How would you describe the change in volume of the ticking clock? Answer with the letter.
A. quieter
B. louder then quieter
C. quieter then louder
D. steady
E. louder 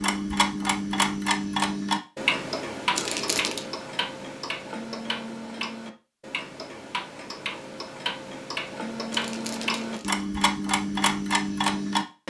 C.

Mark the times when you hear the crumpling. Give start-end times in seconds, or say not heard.
3.0-3.6, 9.1-10.2.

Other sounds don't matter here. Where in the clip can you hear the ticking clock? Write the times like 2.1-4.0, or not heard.
0.0-12.2.